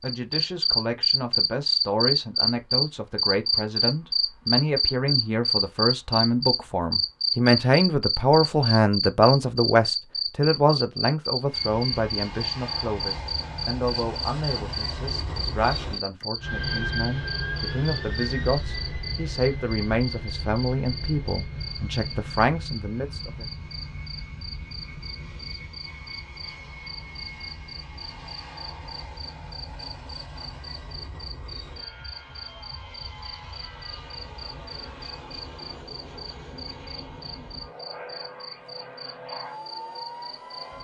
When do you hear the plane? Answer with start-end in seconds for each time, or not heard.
11.4-40.7.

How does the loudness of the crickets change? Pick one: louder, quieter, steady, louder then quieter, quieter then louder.
quieter.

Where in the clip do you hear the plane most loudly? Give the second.
17 s.